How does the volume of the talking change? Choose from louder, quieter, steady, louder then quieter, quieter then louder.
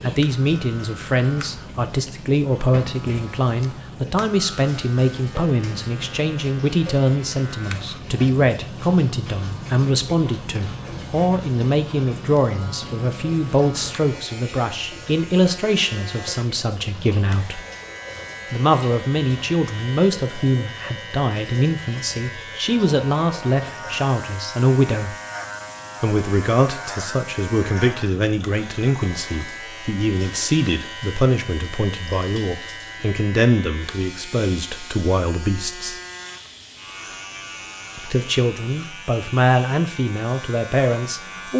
steady.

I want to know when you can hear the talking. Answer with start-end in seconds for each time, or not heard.
0.0-17.6, 18.5-25.1, 26.0-36.0, 38.0-41.5.